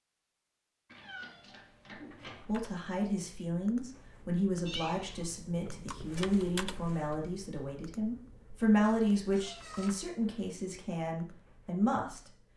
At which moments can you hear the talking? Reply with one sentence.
The talking can be heard from 2.5 to 12.3 s.